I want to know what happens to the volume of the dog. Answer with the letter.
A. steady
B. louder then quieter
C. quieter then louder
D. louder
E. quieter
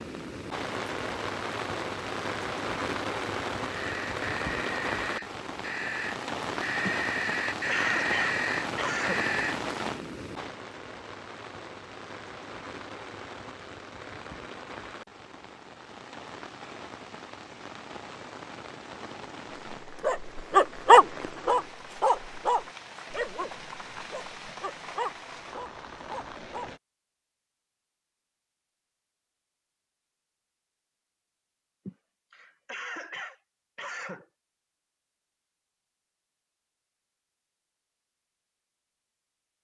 E.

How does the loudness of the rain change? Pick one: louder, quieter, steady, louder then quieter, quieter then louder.
quieter.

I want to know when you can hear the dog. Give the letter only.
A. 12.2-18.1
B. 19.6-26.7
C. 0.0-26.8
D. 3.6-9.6
B.